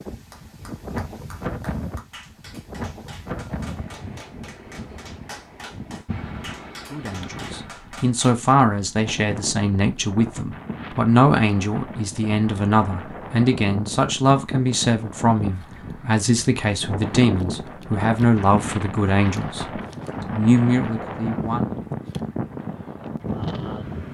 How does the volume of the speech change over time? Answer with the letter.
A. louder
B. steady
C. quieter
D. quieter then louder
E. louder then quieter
B.